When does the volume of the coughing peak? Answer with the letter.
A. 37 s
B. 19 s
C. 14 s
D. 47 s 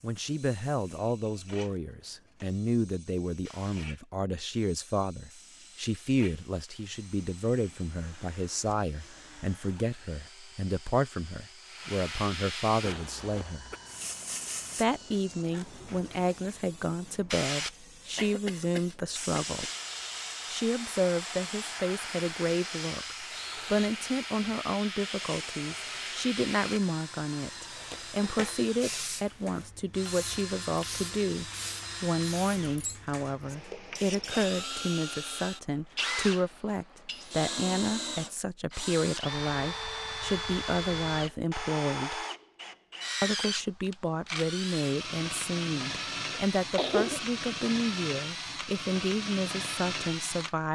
D.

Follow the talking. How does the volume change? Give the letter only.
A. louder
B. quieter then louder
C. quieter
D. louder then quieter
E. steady
E.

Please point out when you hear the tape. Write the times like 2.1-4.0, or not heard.
not heard.